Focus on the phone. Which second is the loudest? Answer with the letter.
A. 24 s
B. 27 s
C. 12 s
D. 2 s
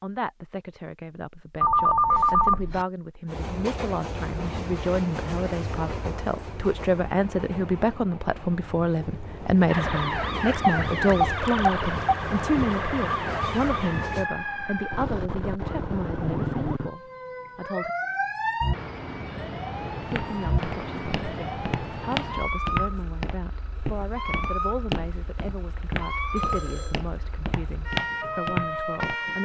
D.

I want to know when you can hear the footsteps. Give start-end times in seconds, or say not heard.
20.0-29.1.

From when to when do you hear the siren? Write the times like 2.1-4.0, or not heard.
9.7-29.4.